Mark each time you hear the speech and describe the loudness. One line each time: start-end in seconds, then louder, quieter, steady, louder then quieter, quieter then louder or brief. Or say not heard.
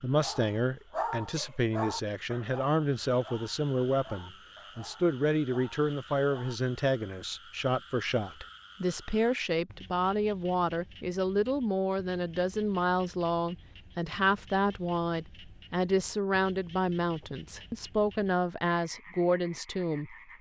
0.0-20.1 steady.